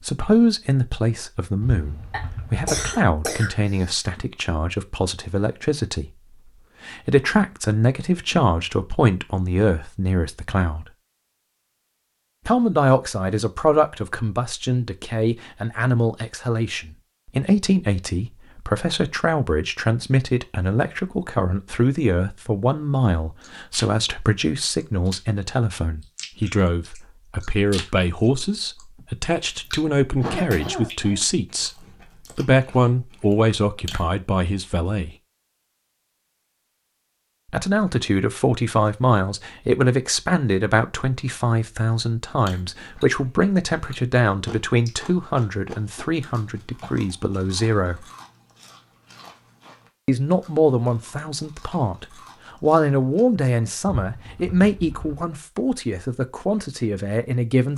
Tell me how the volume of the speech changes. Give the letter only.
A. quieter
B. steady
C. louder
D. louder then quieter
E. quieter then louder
B.